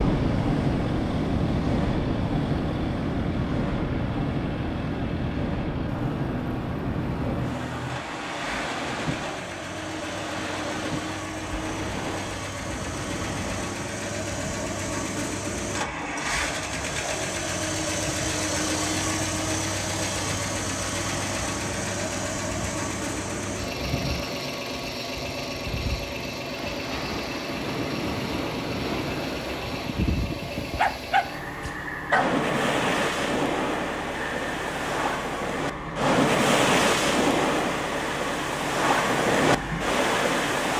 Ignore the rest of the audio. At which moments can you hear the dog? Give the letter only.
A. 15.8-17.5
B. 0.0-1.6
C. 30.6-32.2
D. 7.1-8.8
C.